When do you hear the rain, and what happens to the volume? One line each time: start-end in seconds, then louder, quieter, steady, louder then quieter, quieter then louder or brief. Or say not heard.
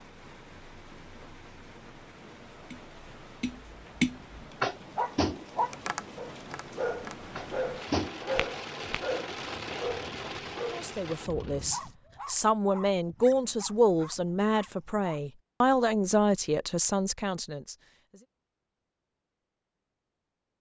0.0-11.9 louder.